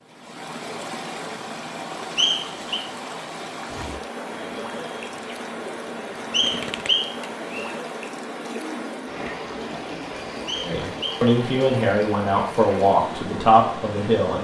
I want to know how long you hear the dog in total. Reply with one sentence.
The dog can't be heard in this clip.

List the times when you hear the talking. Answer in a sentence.
The talking can be heard from 10.6 to 14.3 s.